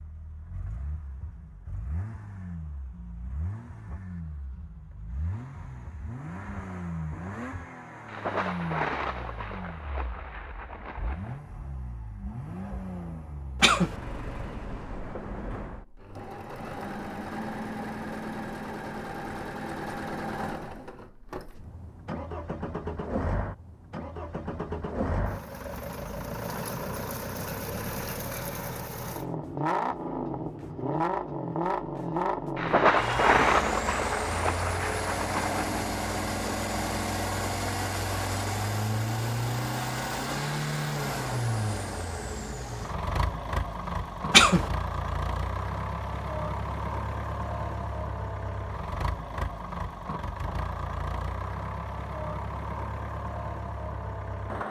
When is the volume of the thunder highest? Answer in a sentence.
The volume of the thunder peaks at 33 seconds.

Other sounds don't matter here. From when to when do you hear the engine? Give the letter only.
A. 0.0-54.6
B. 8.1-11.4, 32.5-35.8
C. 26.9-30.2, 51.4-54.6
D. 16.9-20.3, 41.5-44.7
A.